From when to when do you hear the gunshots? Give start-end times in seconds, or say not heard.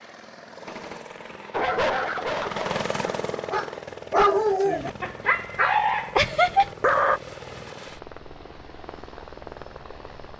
0.7-1.4.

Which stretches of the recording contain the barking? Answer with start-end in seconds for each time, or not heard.
1.5-7.2.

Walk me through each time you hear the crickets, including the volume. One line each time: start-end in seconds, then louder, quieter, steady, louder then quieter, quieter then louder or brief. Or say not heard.
not heard.